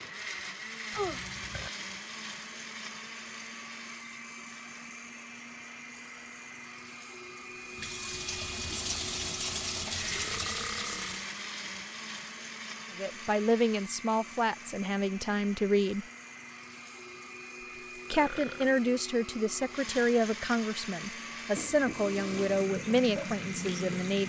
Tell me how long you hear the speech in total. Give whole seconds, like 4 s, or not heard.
9 s.